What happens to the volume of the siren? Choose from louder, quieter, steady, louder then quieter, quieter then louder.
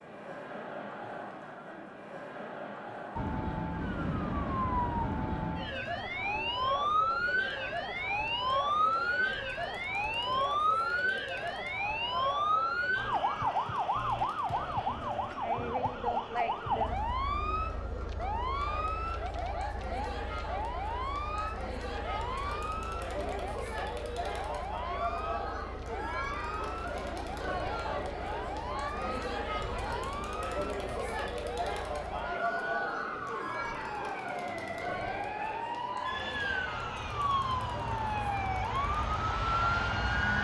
quieter then louder.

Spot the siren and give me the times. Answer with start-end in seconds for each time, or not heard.
3.1-40.3.